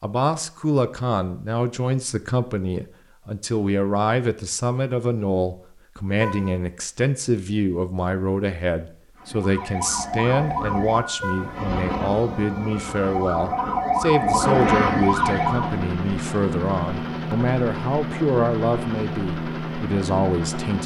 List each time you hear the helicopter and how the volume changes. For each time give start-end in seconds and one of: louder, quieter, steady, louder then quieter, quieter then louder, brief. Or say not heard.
15.0-20.8 steady.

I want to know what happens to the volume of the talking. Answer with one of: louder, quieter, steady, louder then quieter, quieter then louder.
steady.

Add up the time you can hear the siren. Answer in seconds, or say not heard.
7 s.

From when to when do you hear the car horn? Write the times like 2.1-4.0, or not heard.
6.2-6.6, 11.2-11.6.